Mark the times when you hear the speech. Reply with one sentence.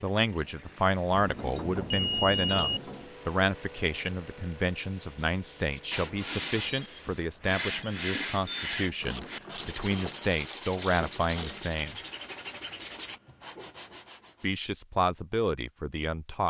The speech can be heard from 0.0 to 11.9 s and from 14.4 to 16.4 s.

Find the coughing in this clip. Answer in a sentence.
You can't hear the coughing here.